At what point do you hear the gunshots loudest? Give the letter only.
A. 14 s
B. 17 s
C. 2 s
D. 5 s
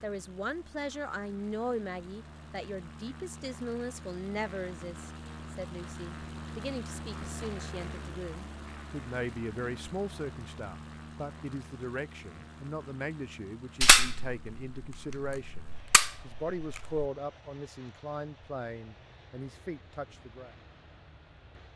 A.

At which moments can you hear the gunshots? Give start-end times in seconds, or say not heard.
13.8-17.1.